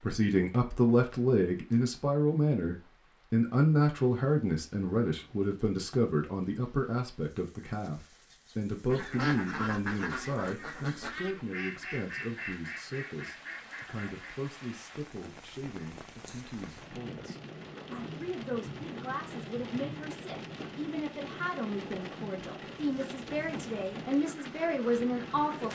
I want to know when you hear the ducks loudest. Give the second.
9 s.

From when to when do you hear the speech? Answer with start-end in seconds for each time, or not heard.
0.0-25.7.